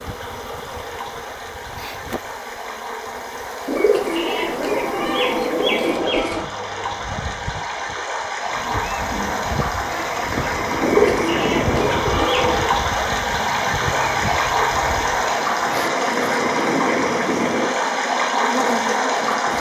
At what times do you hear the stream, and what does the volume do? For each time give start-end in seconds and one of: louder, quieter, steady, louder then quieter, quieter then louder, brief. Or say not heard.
0.0-19.5 louder.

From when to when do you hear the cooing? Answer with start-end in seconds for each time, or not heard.
3.6-6.5, 10.8-12.7.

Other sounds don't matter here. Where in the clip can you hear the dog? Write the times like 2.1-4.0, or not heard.
not heard.